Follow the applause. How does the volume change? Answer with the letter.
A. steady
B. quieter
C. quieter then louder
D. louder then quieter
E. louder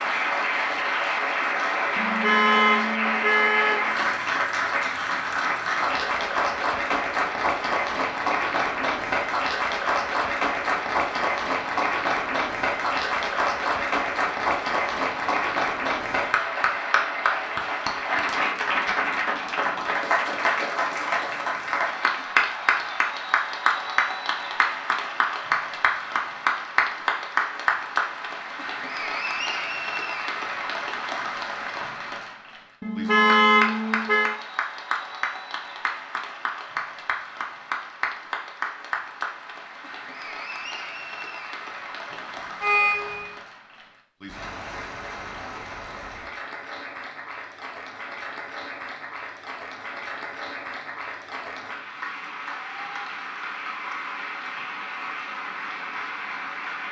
B.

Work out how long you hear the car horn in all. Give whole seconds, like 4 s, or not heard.
5 s.